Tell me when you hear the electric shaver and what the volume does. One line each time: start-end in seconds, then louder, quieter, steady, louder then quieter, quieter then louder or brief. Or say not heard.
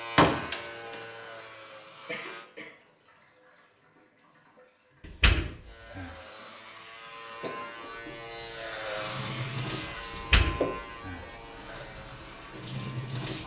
0.0-2.5 brief
5.6-13.3 louder then quieter.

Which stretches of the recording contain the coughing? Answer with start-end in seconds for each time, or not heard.
2.0-2.8, 7.4-7.8.